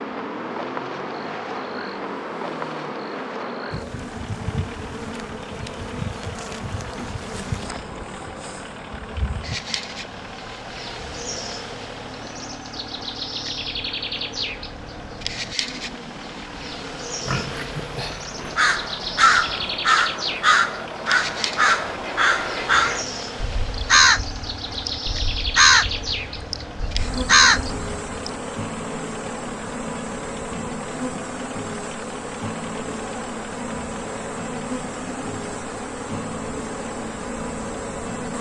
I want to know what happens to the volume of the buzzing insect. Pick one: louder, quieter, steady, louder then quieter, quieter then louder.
steady.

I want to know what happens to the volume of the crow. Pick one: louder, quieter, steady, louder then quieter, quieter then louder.
steady.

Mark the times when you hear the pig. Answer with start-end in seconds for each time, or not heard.
17.2-18.6.